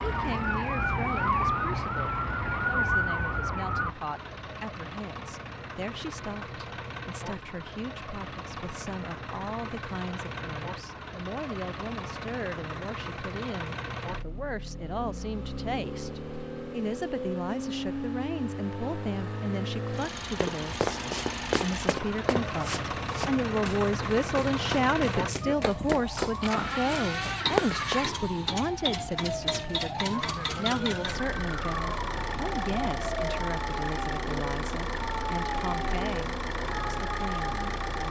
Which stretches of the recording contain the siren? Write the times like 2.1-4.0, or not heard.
0.0-4.0, 25.4-38.0.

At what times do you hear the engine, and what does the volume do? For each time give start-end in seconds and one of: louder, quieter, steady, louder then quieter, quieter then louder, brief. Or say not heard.
0.0-38.0 louder.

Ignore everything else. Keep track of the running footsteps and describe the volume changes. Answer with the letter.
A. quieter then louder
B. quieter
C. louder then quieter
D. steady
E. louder
A.